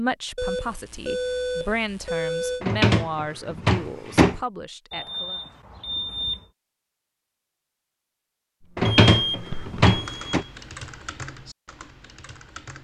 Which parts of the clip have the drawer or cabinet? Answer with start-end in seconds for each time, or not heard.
2.6-4.3, 8.8-10.4.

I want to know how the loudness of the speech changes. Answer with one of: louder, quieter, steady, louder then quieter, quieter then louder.
louder then quieter.